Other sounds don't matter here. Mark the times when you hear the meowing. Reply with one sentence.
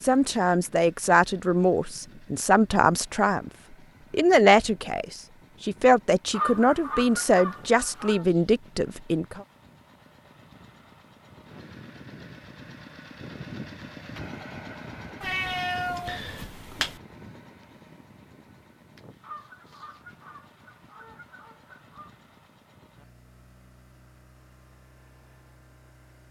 The meowing can be heard from 15.2 to 17.0 s.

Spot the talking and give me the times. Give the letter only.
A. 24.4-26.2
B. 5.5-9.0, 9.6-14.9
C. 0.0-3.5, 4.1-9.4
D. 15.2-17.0
C.